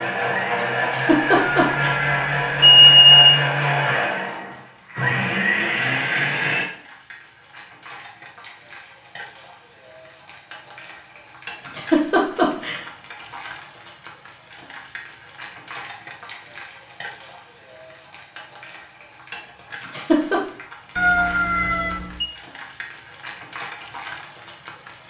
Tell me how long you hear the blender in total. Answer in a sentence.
The blender can be heard for 7 seconds in total.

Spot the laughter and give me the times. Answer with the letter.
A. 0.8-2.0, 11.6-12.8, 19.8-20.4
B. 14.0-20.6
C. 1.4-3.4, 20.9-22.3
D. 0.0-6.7
A.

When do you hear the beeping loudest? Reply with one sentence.
The volume of the beeping peaks at 3 seconds.